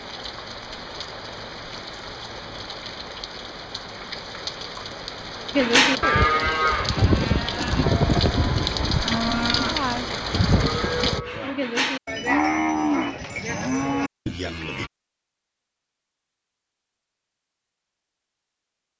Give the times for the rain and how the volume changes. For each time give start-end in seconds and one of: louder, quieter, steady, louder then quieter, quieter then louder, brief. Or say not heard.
0.0-11.2 louder.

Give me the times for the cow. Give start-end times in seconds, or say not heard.
5.5-14.9.